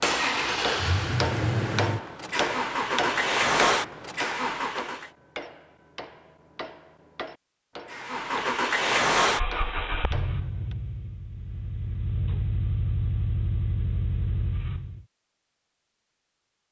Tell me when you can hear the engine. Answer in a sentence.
You can hear the engine from 0.0 to 5.1 s and from 7.9 to 15.1 s.